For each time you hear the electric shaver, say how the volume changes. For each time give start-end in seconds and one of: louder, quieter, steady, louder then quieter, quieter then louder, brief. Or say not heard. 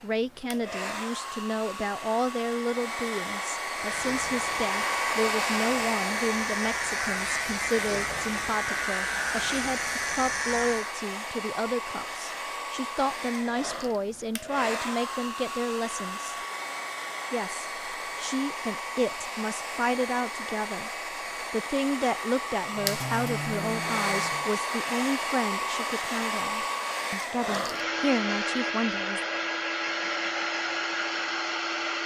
3.7-10.9 louder
22.7-24.5 brief.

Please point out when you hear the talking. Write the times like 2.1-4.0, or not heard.
0.0-16.4, 17.3-20.9, 21.5-29.2.